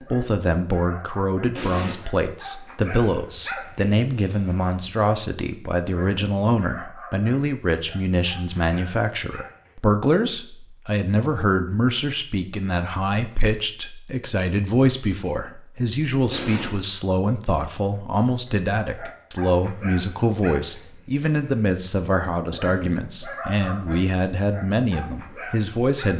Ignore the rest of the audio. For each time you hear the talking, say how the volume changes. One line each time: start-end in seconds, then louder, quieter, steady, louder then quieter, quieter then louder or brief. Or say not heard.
0.1-26.1 steady.